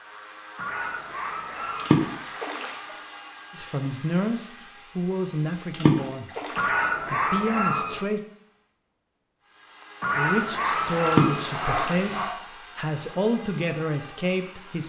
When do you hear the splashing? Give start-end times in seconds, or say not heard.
1.8-2.7, 5.7-6.7, 11.1-12.0.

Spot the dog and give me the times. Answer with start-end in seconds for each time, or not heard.
0.6-2.1, 6.5-8.1, 10.0-12.3.